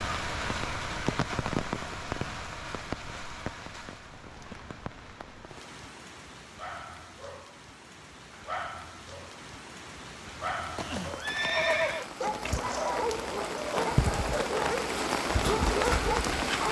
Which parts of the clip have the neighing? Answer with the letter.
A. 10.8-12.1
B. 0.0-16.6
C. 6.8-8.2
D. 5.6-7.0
A.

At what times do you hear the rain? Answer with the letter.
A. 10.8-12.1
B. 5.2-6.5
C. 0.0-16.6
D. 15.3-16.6
C.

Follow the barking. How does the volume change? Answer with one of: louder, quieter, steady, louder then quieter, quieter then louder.
louder.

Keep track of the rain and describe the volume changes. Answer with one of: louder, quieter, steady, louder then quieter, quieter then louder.
quieter then louder.